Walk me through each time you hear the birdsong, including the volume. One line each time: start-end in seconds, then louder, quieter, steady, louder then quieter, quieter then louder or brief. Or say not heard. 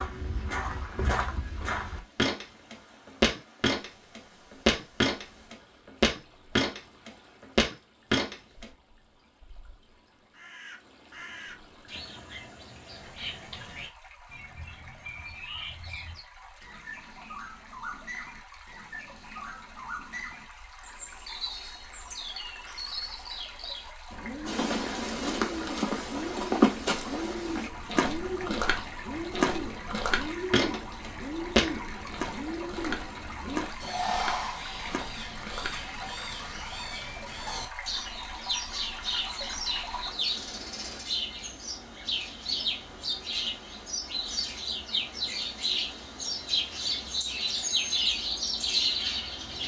10.3-49.6 louder.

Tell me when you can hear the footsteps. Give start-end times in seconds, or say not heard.
0.0-8.7, 24.4-35.9.